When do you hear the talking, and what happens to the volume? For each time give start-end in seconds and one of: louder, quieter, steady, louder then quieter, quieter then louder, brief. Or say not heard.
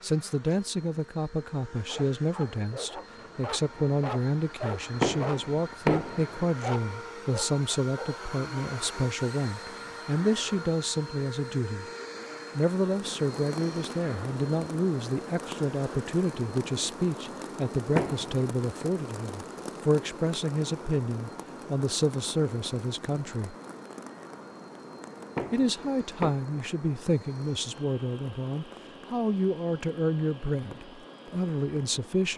0.0-11.8 steady
12.6-23.6 steady
25.5-32.3 steady.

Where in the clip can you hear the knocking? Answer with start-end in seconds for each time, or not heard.
5.0-6.5, 17.9-18.9, 25.4-26.4.